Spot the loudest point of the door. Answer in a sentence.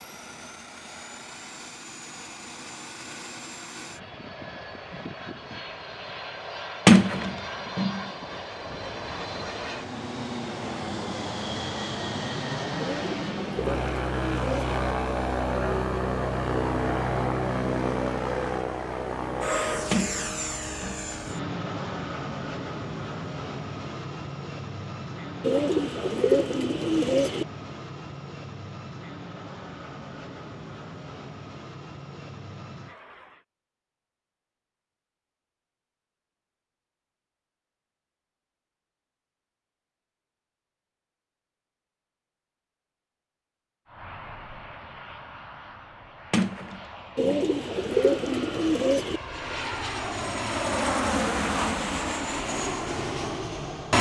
The volume of the door peaks at 7 seconds.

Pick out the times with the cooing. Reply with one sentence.
You can hear the cooing from 12.8 to 14.8 s, from 25.4 to 27.4 s and from 47.1 to 49.2 s.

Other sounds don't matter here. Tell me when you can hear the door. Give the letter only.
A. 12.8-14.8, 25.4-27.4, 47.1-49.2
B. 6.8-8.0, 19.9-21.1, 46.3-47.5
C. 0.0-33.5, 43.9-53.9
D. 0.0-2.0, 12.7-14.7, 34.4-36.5
B.